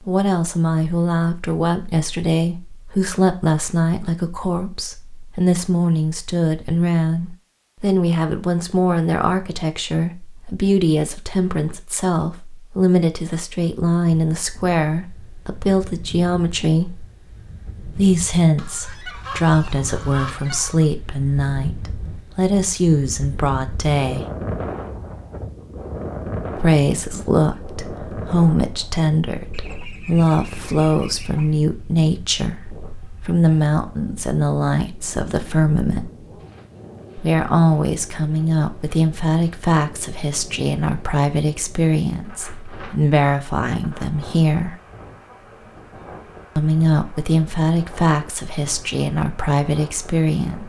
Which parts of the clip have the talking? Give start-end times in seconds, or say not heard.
0.1-17.1, 17.9-24.2, 26.6-36.1, 37.1-44.8, 46.5-50.6.